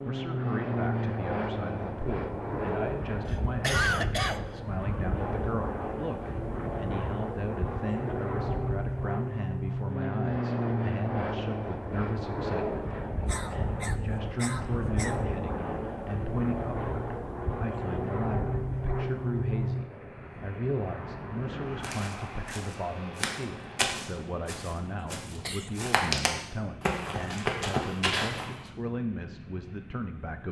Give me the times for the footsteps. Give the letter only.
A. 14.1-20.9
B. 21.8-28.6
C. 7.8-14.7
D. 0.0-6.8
B.